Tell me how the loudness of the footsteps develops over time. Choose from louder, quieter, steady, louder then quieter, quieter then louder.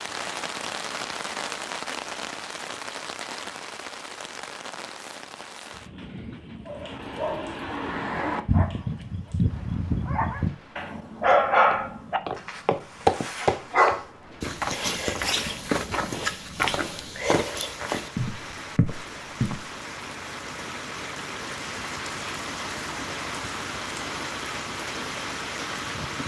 quieter.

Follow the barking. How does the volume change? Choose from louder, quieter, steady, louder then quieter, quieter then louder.
louder then quieter.